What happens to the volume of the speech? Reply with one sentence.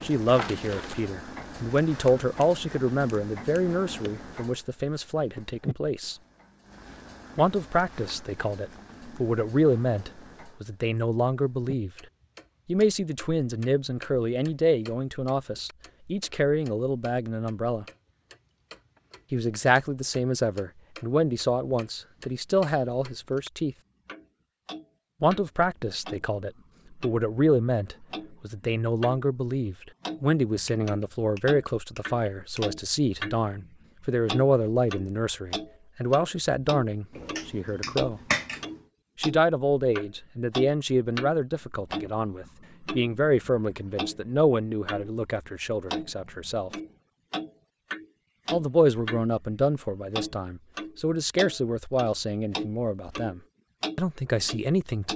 The loudness of the speech stays about the same.